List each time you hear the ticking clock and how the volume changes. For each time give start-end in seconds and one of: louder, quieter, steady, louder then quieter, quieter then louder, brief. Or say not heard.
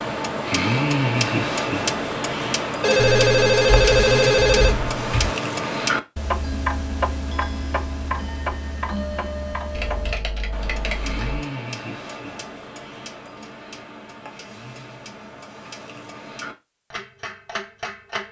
0.0-18.2 quieter.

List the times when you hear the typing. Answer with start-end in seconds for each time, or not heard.
3.0-5.3, 9.8-11.4.